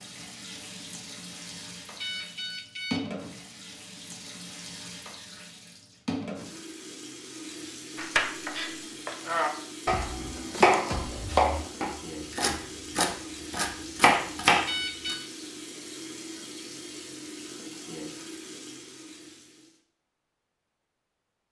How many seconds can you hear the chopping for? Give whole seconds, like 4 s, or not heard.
7 s.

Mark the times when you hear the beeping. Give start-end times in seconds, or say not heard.
2.0-3.1, 14.7-15.3.